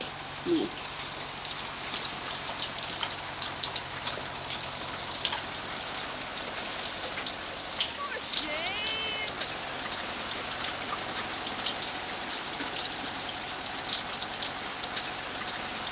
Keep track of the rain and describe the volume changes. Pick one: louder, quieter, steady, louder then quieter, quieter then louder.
steady.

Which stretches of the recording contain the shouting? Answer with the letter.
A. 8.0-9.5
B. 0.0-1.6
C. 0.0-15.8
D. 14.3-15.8
A.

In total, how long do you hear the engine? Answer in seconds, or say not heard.
16 s.